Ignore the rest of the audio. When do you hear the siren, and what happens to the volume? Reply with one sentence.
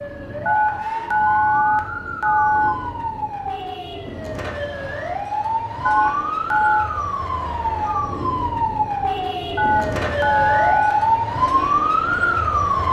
You can hear the siren from 0.0 to 12.8 s, getting louder.